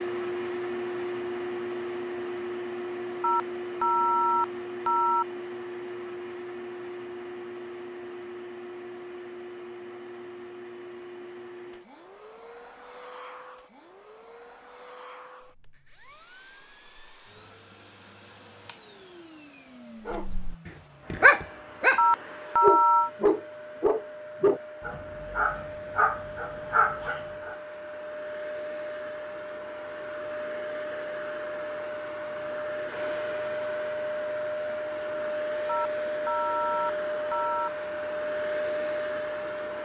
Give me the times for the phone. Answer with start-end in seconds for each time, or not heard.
3.2-5.2, 21.9-23.1, 35.6-37.7.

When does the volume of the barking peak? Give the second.
21 s.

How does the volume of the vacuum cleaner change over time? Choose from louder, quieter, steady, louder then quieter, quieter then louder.
quieter then louder.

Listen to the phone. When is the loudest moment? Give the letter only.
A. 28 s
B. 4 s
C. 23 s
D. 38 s
C.